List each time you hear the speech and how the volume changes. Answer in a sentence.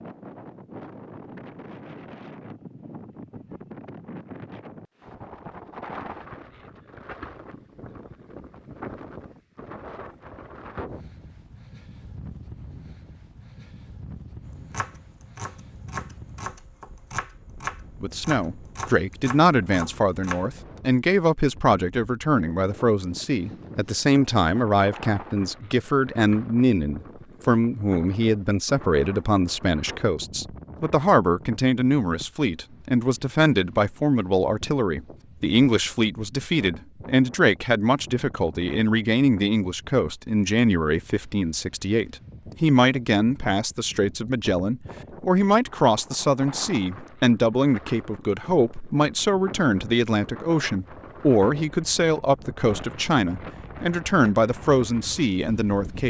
The speech can be heard from 18.0 to 56.0 s, at a steady volume.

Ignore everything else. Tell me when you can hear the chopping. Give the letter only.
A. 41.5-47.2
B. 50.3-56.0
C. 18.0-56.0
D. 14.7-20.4
D.